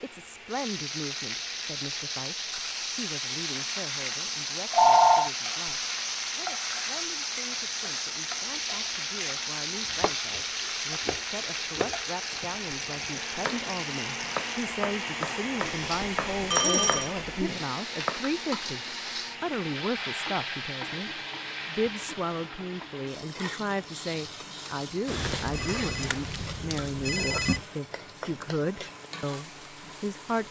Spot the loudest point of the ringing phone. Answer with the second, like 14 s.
5 s.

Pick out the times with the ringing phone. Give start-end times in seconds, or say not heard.
4.7-5.3, 15.8-17.1, 25.1-27.6.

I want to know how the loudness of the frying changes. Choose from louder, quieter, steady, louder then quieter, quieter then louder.
quieter.